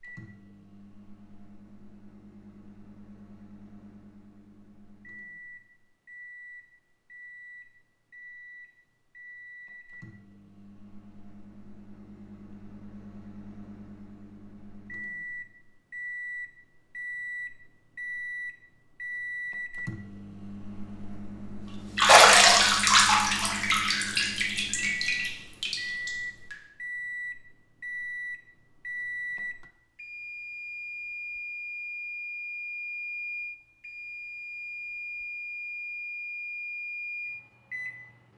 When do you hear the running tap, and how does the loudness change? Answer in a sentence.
You can hear the running tap from 21.9 to 26.6 s, getting quieter.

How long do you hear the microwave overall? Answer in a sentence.
The microwave can be heard for 38 seconds in total.